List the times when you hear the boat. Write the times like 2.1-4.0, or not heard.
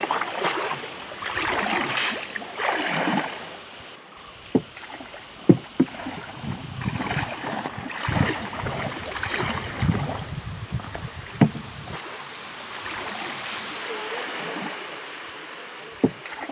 0.0-16.4.